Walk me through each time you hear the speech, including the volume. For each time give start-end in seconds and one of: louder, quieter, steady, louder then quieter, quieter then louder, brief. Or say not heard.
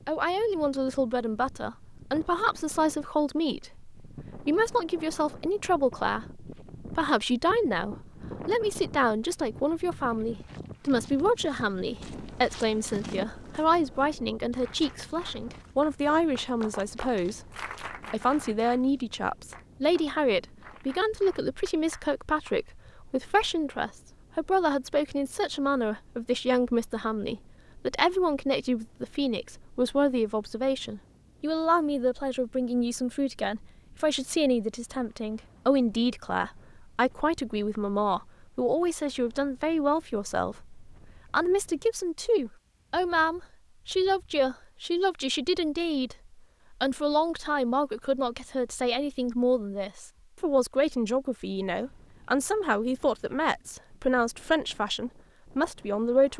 0.1-17.4 steady
18.1-56.3 steady.